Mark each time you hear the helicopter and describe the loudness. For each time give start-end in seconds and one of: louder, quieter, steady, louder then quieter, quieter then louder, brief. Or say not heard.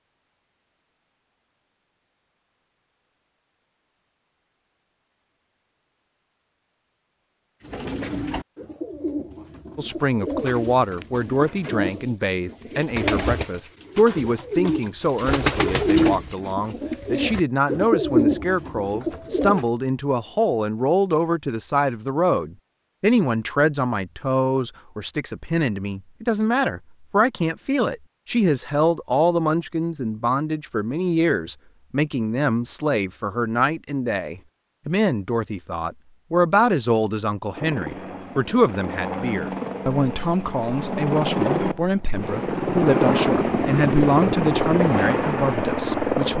37.5-46.3 louder.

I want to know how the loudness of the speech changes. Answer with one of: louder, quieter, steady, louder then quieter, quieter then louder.
steady.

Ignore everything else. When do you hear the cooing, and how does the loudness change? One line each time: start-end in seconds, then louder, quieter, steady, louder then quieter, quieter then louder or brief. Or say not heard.
7.6-19.6 louder.